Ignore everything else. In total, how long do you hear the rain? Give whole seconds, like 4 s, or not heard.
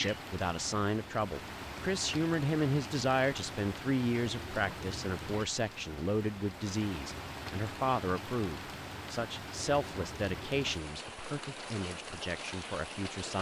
13 s.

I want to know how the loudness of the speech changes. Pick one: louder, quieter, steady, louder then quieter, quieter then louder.
quieter.